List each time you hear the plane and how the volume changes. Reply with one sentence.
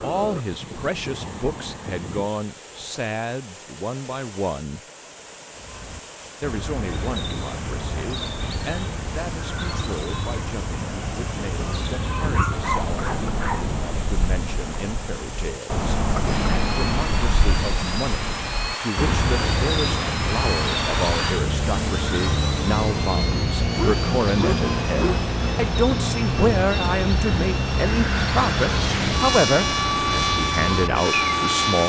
The plane can be heard briefly from 0.0 to 2.3 s; and from 16.2 to 31.8 s, getting louder.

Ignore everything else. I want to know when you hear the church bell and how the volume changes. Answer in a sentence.
The church bell can't be heard in this clip.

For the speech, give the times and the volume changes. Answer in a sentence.
You can hear the speech from 0.0 to 4.8 s, at a steady volume; and from 6.4 to 31.8 s, getting louder.